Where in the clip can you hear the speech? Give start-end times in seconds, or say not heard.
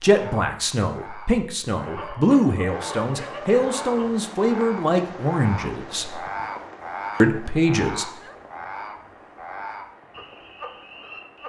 0.0-6.2, 7.2-8.1.